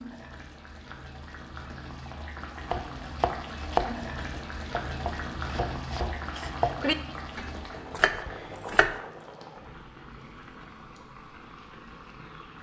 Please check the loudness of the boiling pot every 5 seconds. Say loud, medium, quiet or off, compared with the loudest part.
loud, loud, medium.